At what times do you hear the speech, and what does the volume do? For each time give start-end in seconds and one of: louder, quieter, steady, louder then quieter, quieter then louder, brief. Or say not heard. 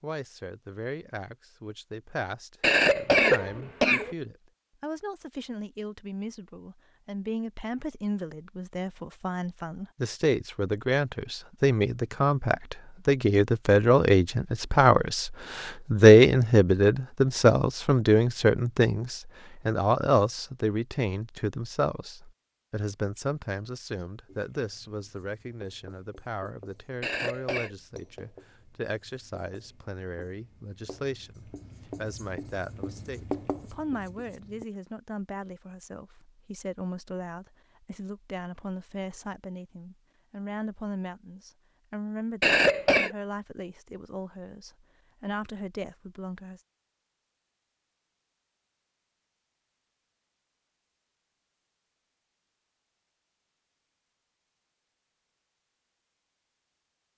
0.0-46.6 louder then quieter.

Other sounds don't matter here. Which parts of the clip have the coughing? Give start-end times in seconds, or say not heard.
2.6-4.2, 27.0-27.8, 42.4-43.1.